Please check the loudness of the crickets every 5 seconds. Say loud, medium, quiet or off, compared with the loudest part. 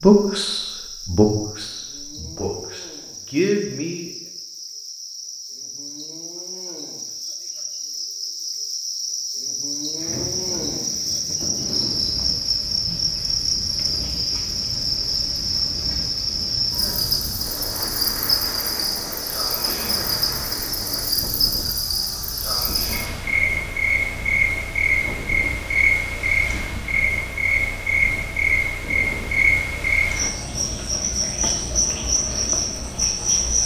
quiet, medium, loud, loud, loud, loud, loud.